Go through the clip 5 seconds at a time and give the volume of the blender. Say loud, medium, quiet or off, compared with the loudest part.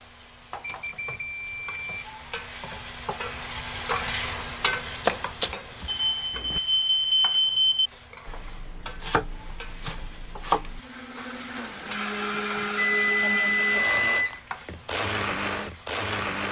off, off, loud, loud.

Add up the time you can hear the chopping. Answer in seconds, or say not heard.
4 s.